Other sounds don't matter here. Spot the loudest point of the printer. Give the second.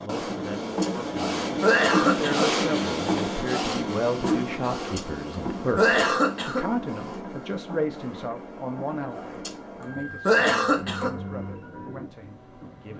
2 s.